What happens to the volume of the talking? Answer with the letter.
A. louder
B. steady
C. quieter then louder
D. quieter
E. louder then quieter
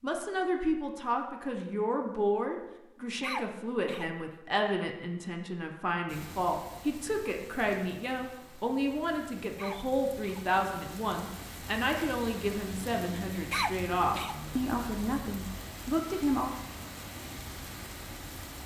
B.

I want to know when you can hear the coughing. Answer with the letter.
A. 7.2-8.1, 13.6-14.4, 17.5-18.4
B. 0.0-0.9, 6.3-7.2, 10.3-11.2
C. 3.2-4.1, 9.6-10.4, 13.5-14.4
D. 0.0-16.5
C.